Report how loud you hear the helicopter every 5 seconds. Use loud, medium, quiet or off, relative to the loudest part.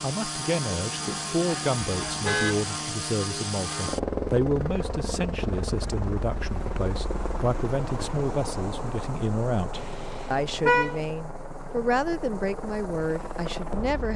loud, loud, medium.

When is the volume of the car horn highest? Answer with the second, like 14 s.
11 s.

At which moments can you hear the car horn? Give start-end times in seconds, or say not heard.
2.0-2.7, 9.8-11.0.